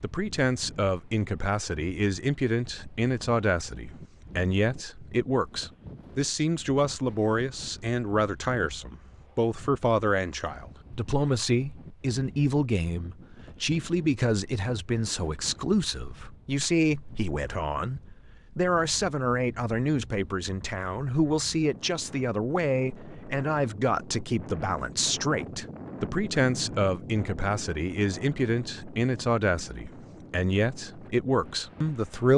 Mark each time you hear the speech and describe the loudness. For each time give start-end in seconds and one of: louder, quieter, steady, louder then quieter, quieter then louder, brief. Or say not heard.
0.0-32.3 steady.